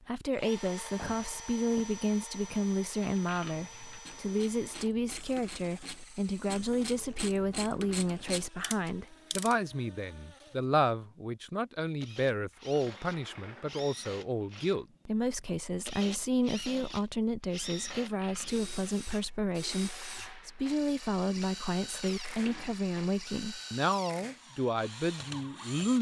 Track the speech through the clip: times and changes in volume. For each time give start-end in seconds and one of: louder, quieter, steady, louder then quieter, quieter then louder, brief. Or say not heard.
0.1-25.9 steady.